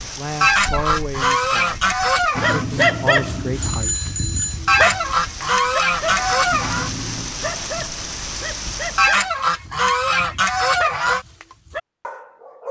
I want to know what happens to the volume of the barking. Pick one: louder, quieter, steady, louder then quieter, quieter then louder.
quieter.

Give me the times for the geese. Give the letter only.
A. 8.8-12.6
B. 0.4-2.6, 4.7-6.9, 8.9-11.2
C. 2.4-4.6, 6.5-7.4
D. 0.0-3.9
B.